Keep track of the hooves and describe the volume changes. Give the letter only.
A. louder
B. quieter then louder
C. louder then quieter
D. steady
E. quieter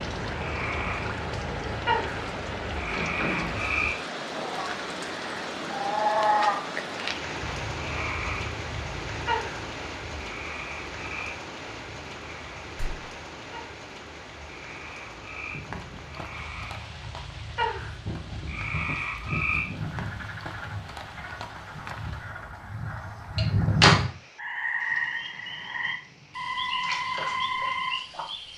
C.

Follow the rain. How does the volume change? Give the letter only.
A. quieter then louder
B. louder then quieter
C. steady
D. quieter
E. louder
D.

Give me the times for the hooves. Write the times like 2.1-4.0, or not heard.
15.5-22.2.